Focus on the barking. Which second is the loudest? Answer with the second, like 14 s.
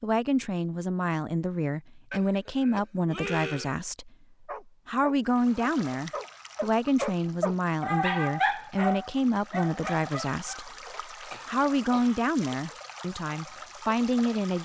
8 s.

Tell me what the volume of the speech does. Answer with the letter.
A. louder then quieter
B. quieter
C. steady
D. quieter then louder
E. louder
C.